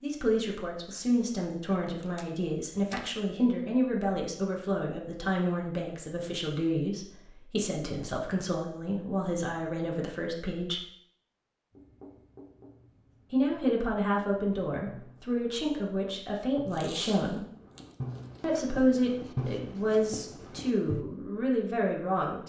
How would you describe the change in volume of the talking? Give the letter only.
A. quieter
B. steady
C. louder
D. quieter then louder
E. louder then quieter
B.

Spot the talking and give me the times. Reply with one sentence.
You can hear the talking from 0.0 to 10.8 s, from 13.3 to 17.4 s and from 18.4 to 22.4 s.